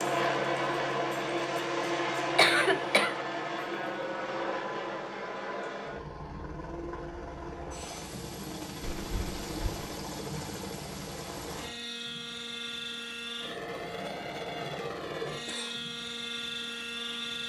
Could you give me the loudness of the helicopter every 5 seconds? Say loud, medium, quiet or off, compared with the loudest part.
loud, medium, medium, medium.